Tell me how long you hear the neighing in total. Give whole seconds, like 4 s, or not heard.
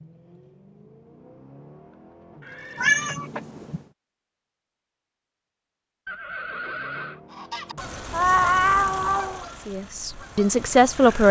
2 s.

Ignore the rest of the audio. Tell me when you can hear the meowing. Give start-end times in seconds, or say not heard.
2.8-3.8, 8.1-9.4.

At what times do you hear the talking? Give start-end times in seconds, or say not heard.
9.7-11.2.